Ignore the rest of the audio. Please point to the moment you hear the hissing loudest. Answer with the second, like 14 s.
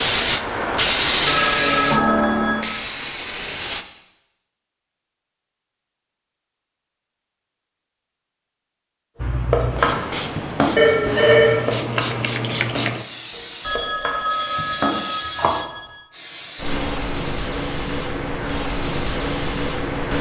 1 s.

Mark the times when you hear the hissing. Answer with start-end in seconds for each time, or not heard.
0.0-3.9, 9.2-20.1.